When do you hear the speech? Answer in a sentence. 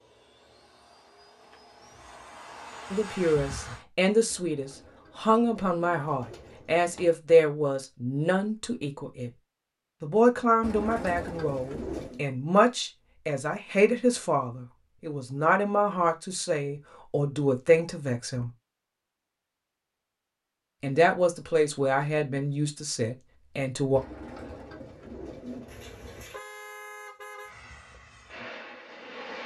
The speech can be heard from 2.9 to 9.3 s, from 10.0 to 18.5 s and from 20.8 to 24.0 s.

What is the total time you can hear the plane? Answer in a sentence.
You can hear the plane for 6 seconds altogether.